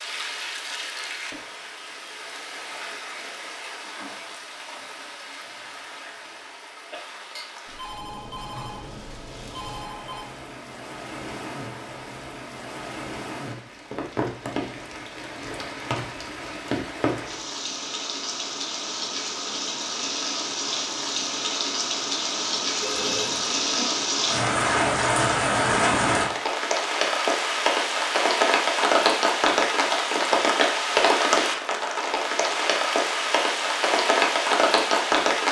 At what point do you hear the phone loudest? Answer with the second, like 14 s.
23 s.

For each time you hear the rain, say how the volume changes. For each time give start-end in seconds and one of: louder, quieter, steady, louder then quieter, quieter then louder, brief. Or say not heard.
0.0-35.4 louder.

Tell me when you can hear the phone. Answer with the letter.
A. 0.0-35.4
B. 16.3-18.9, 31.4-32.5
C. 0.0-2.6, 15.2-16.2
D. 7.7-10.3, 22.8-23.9
D.